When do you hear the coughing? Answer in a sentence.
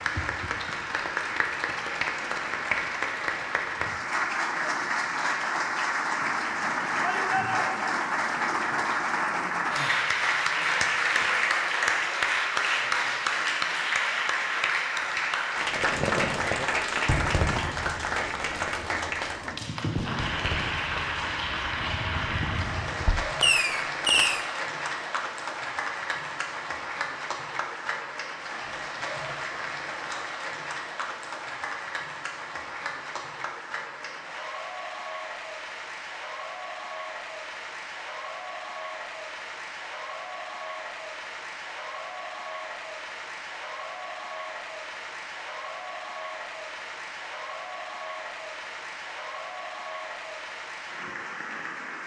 You can't hear the coughing here.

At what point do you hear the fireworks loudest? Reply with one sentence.
The volume of the fireworks peaks at 24 seconds.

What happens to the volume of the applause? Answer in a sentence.
The loudness of the applause goes down.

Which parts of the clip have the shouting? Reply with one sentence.
You can hear the shouting from 7.0 to 8.0 s.